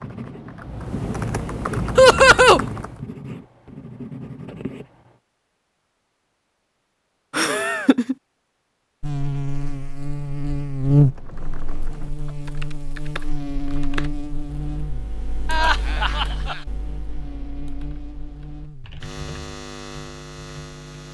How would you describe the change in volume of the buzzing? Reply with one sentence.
The loudness of the buzzing goes down.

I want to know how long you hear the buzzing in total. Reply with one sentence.
You can hear the buzzing for 12 seconds altogether.